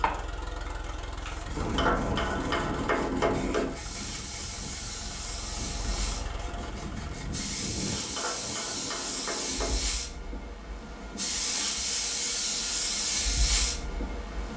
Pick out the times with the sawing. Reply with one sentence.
The sawing can be heard from 1.4 to 8.0 s.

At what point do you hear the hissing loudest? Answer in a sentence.
The volume of the hissing peaks at 13 seconds.